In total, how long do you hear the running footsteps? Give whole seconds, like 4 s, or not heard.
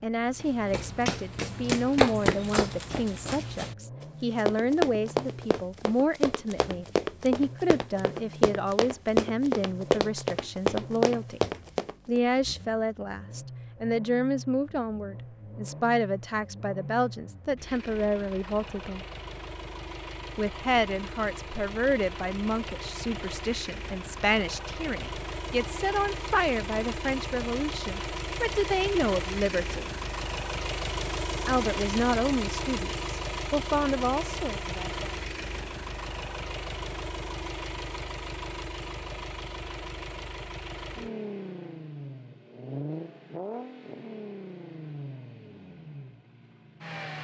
11 s.